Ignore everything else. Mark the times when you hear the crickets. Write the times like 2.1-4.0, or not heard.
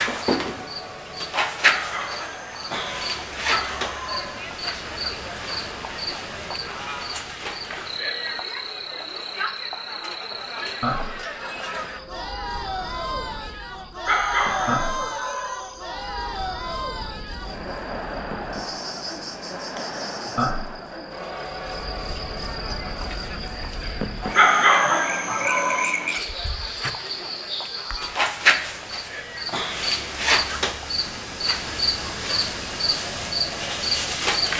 0.0-34.5.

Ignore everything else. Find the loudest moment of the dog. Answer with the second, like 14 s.
25 s.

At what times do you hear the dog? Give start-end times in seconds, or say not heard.
1.6-4.3, 14.1-15.8, 24.4-25.9.